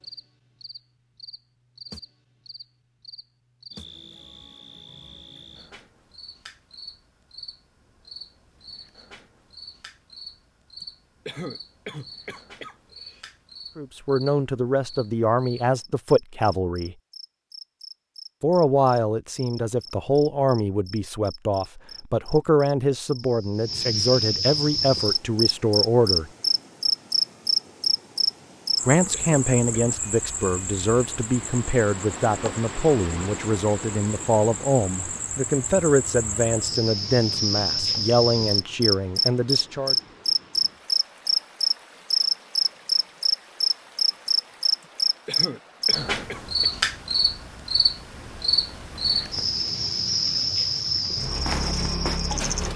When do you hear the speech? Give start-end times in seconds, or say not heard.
13.8-16.9, 18.4-26.3, 28.9-40.0.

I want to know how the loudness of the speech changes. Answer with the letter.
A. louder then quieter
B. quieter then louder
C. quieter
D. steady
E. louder
D.